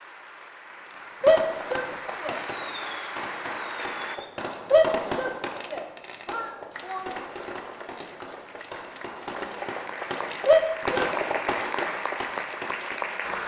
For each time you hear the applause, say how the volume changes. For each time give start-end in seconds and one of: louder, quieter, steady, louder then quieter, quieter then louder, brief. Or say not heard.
0.0-4.2 louder
6.7-13.4 louder.